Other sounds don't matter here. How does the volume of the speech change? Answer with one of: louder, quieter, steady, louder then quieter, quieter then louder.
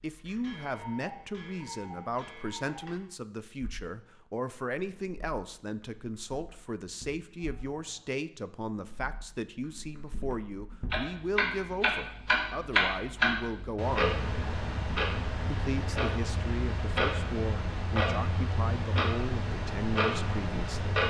steady.